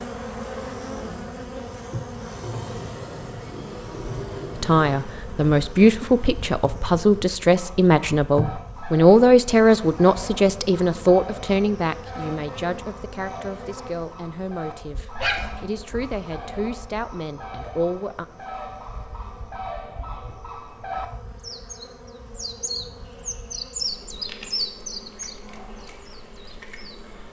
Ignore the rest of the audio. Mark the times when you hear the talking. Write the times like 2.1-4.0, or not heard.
4.6-18.2.